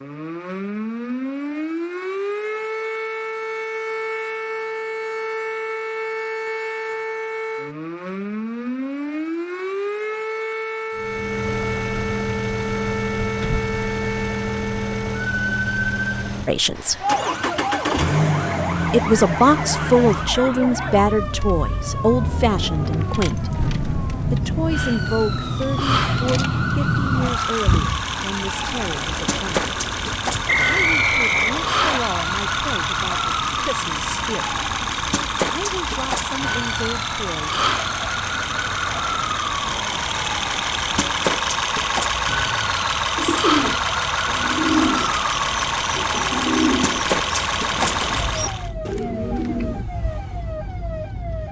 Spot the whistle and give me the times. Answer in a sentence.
You can hear the whistle from 30.4 to 32.0 s.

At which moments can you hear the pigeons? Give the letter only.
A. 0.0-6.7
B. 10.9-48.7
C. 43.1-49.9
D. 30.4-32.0
C.